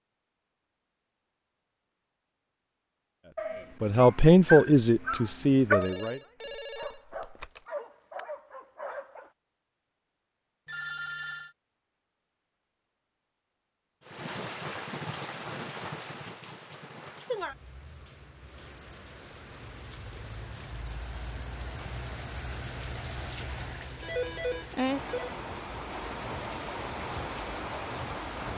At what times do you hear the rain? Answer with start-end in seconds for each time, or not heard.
14.1-28.5.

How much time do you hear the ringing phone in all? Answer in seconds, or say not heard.
4 s.